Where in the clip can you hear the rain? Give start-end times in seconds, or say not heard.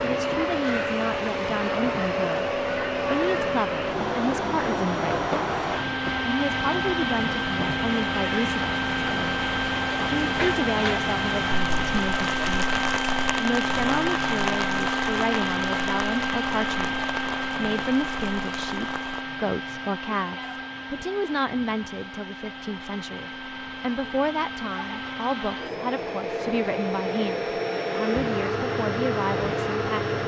0.0-19.2.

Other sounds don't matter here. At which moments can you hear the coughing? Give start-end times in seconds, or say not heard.
not heard.